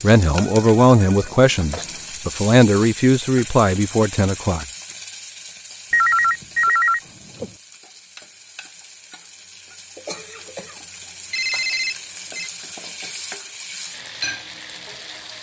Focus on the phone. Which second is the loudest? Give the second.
6 s.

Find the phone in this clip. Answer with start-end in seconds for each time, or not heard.
0.4-2.0, 5.9-7.5, 11.3-12.5.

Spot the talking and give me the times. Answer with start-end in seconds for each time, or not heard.
0.0-4.7.